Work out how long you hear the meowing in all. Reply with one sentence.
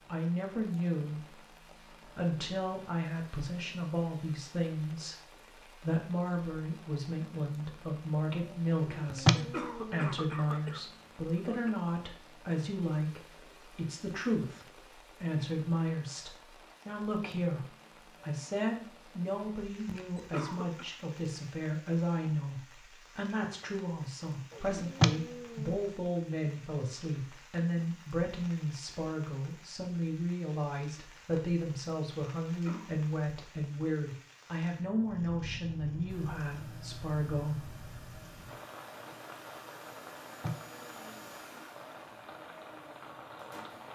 You can hear the meowing for 3 seconds altogether.